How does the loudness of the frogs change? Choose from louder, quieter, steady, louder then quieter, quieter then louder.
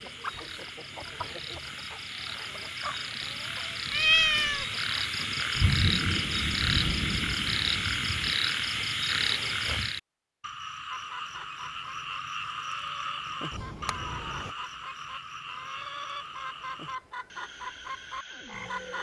louder then quieter.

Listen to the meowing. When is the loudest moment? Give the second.
4 s.